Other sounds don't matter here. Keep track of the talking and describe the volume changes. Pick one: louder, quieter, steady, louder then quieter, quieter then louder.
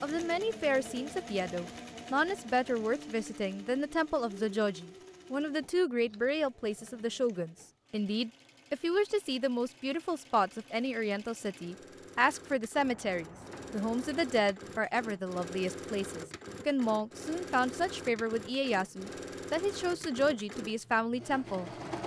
steady.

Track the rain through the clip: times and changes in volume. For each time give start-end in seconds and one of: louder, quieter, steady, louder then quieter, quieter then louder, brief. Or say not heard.
not heard.